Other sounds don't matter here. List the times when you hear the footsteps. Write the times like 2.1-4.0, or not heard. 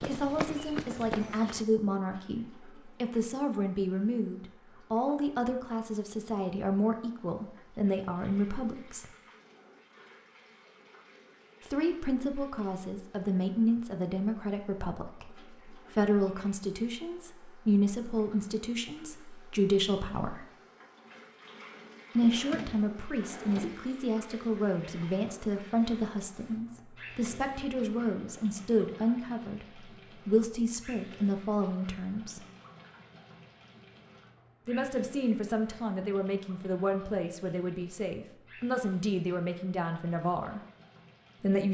0.0-1.6.